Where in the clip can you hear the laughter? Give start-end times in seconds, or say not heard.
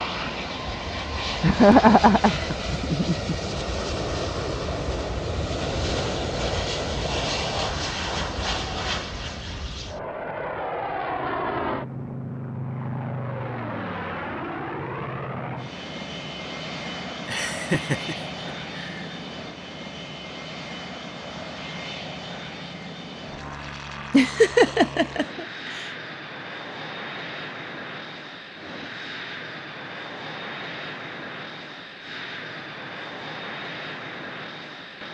1.4-3.4, 17.2-19.1, 24.1-25.9.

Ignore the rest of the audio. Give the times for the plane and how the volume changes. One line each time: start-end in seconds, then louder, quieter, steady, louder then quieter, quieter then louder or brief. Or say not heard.
0.0-35.0 quieter.